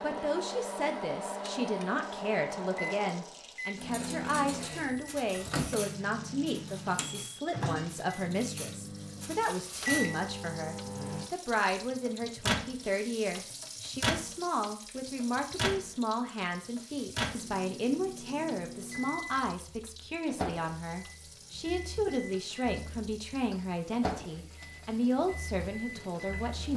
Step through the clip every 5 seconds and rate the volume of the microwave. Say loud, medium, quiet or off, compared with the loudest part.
loud, loud, loud, loud, medium, medium.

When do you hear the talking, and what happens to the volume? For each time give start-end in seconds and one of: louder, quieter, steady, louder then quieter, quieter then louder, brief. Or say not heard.
0.0-26.7 steady.